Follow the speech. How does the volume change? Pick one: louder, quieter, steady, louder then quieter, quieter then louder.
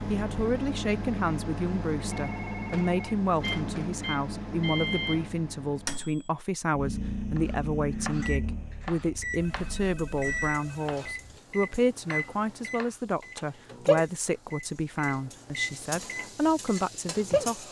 steady.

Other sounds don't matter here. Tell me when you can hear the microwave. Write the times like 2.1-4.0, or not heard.
0.0-17.5.